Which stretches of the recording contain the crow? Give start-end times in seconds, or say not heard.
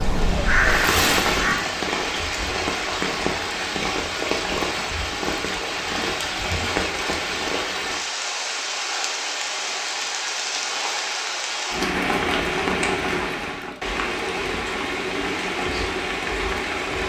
0.0-1.6.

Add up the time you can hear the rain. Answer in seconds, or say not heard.
17 s.